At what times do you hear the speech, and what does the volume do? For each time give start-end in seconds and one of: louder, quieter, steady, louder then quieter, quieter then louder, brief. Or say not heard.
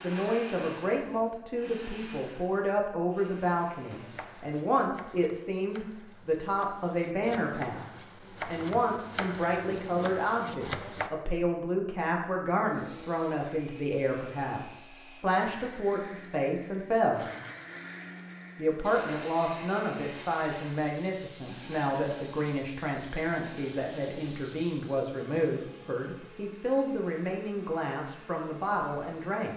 0.0-17.2 steady
18.6-29.5 steady.